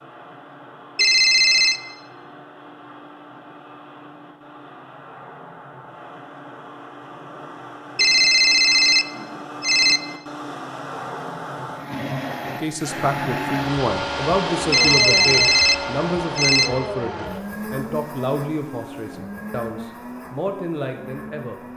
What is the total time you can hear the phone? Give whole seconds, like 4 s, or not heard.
5 s.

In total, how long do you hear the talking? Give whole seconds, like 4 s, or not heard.
9 s.